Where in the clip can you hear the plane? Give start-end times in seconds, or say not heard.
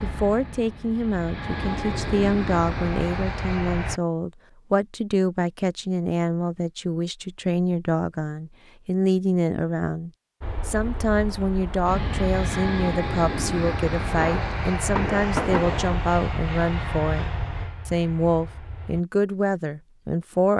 0.0-4.0, 10.4-19.1.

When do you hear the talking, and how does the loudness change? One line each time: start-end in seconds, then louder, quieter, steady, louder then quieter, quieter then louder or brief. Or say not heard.
0.0-20.5 steady.